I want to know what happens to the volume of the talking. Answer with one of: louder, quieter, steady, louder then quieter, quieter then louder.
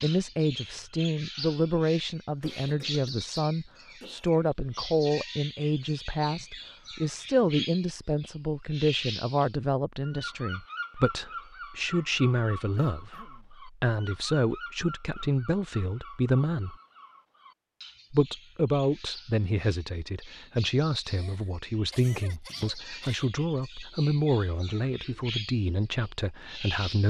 steady.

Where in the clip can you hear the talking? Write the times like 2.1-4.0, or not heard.
0.0-16.8, 18.1-27.0.